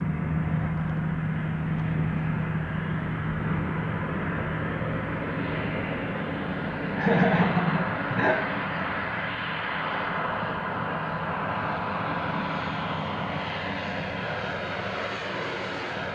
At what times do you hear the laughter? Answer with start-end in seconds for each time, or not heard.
7.0-8.8.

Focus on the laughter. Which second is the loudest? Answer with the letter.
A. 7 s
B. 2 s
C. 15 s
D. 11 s
A.